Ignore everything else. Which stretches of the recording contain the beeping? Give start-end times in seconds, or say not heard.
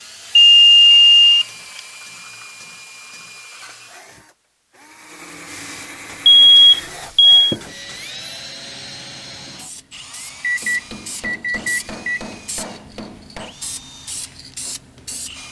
0.3-1.8, 6.2-7.5, 10.4-12.2.